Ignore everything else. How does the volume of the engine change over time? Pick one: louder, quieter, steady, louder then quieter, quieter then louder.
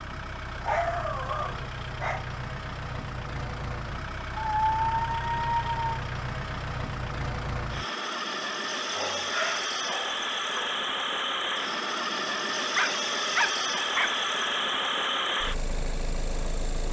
louder.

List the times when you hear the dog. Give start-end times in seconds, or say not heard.
0.6-2.2, 4.3-5.9, 8.9-10.7, 12.8-14.2.